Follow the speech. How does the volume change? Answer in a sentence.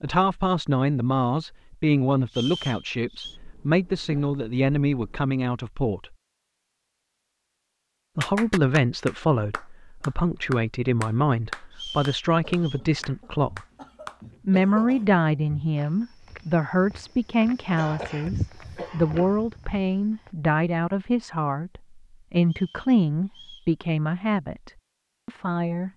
The volume of the speech stays about the same.